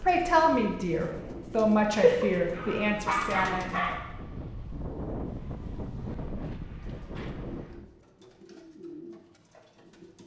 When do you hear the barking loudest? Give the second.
2 s.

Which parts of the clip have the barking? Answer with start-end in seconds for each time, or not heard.
1.9-4.0.